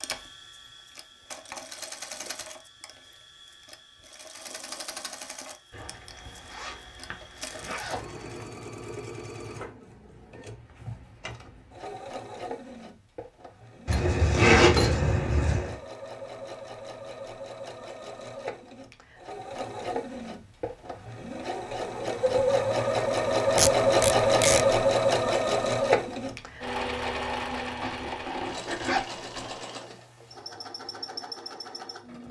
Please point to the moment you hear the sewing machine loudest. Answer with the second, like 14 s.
24 s.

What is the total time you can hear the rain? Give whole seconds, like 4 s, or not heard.
not heard.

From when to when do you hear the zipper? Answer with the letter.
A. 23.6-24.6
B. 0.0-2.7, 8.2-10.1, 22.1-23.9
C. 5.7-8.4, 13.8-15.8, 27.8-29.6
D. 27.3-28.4
C.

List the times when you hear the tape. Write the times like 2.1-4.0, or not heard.
23.6-24.6.